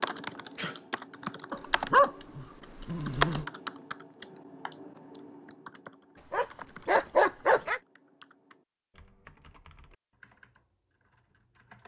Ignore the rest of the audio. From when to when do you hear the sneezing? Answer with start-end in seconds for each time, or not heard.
0.6-1.2.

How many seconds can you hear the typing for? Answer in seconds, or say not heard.
12 s.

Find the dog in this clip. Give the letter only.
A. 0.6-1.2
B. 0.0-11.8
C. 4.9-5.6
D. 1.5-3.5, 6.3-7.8
D.